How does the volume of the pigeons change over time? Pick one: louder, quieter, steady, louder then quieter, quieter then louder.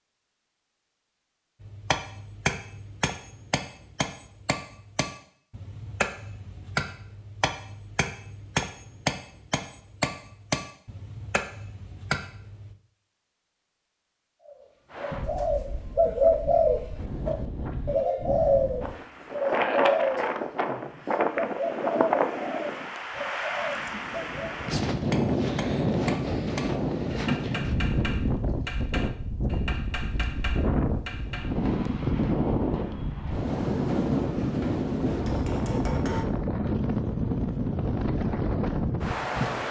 quieter.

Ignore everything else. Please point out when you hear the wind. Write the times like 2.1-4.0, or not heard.
14.9-39.6.